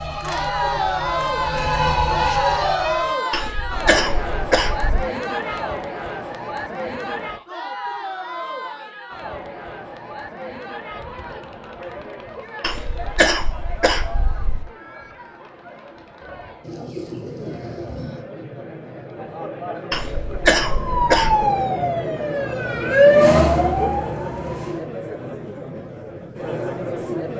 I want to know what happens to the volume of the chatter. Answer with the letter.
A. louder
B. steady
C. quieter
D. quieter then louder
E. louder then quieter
D.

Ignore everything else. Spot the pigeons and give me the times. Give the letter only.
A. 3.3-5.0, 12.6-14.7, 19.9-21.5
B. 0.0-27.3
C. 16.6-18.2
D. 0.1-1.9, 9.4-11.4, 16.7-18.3
C.